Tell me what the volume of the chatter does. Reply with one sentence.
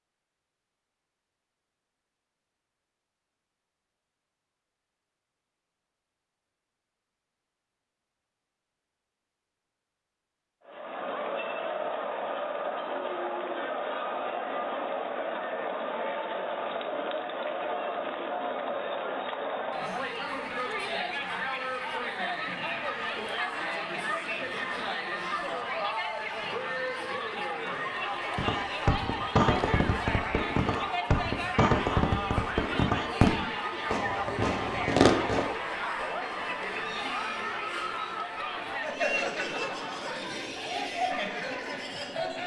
The volume of the chatter stays about the same.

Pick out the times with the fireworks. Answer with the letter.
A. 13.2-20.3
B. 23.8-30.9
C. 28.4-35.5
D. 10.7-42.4
C.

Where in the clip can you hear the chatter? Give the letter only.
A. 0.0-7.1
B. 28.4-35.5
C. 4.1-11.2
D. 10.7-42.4
D.